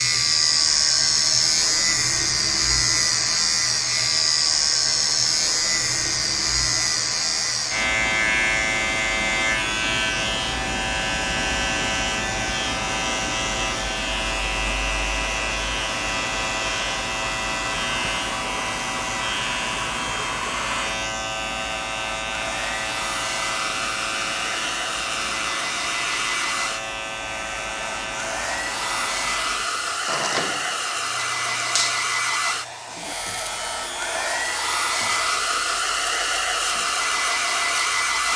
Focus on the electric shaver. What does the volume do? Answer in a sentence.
The volume of the electric shaver goes down.